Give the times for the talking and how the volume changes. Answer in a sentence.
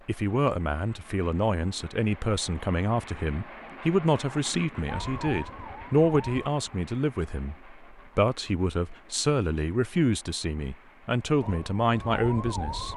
The talking can be heard from 0.1 to 12.9 s, at a steady volume.